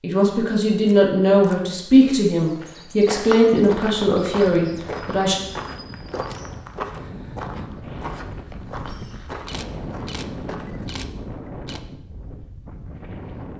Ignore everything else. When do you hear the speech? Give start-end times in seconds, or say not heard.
0.0-5.3.